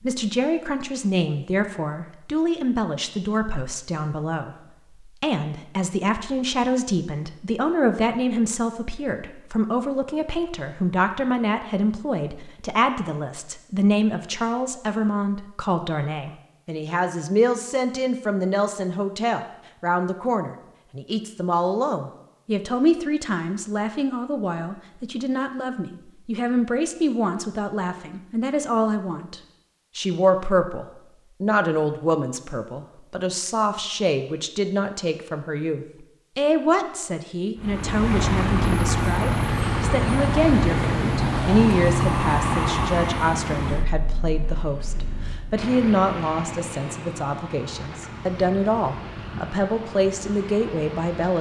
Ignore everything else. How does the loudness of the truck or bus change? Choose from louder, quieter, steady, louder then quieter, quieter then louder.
quieter.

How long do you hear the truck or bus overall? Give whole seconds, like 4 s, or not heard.
14 s.